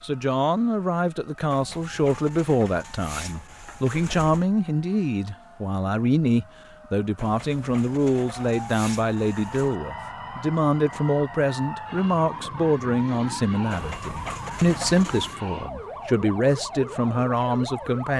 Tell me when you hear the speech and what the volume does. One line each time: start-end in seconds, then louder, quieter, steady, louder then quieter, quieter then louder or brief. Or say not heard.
0.0-18.1 steady.